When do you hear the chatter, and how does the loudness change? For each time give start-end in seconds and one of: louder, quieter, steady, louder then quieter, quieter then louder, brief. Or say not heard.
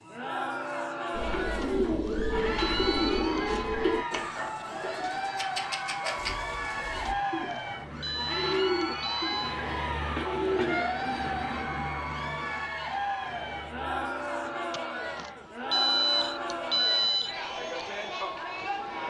0.0-19.0 steady.